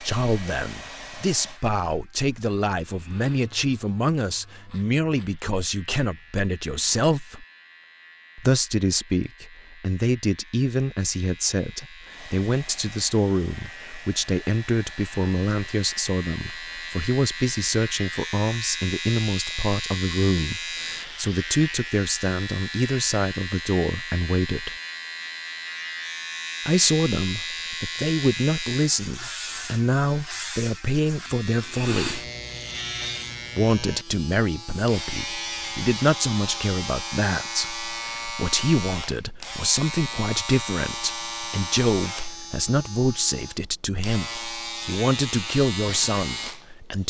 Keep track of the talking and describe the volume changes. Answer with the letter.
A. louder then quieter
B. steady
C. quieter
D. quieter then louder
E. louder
B.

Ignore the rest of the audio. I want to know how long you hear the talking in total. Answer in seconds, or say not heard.
43 s.